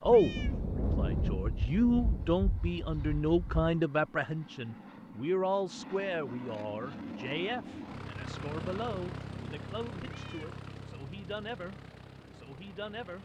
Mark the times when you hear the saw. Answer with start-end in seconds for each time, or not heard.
not heard.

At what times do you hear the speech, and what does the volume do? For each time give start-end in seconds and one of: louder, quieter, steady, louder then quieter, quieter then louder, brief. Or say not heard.
0.0-11.8 quieter
12.3-13.2 brief.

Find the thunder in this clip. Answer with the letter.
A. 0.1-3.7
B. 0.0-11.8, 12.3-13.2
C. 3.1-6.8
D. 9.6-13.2
A.